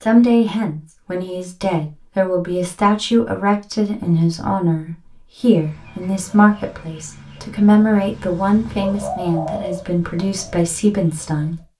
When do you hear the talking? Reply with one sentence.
The talking can be heard from 0.0 to 11.7 s.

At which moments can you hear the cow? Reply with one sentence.
The cow can't be heard in this clip.